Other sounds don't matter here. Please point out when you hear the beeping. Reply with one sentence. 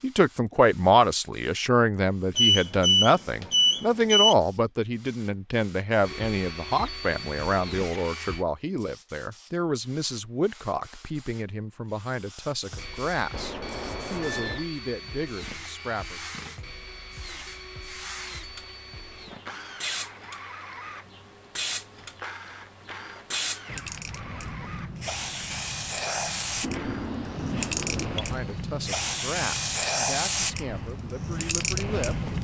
You can hear the beeping from 2.4 to 4.3 s, from 13.3 to 14.7 s and from 26.6 to 28.2 s.